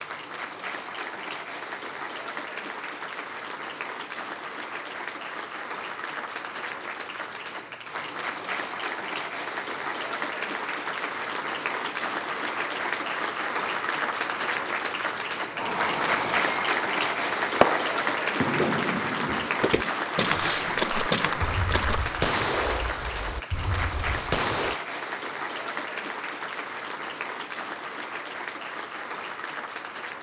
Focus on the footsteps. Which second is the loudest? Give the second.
21 s.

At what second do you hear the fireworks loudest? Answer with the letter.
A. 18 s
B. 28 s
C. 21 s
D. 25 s
A.